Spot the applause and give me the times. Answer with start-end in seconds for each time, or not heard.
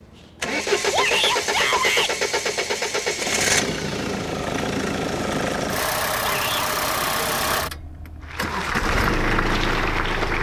8.2-10.3.